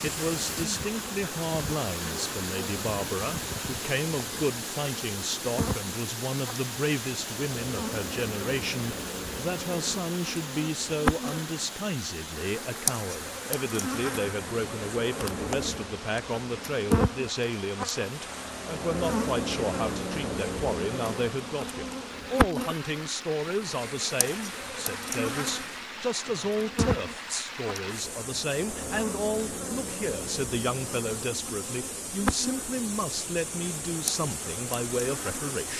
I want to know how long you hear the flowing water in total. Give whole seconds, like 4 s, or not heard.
36 s.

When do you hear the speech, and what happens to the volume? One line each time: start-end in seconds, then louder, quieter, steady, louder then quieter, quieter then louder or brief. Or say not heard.
0.0-35.7 steady.